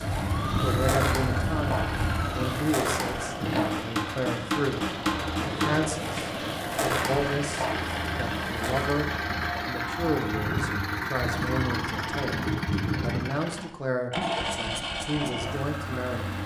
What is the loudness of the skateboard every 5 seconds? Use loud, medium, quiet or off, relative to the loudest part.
loud, loud, off, off.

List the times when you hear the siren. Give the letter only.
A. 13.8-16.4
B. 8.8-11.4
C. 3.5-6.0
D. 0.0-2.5
D.